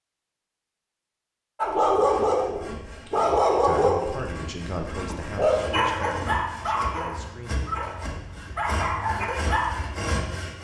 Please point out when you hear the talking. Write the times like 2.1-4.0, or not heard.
3.6-8.2.